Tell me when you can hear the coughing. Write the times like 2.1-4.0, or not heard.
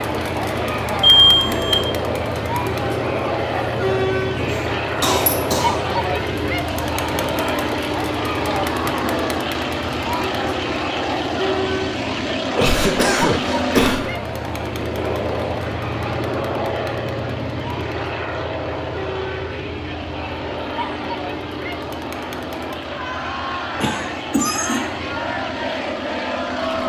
4.3-5.8, 12.6-14.1, 23.8-24.9.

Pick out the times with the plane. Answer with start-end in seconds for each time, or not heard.
0.0-26.8.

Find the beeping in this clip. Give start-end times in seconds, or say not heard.
1.0-1.8.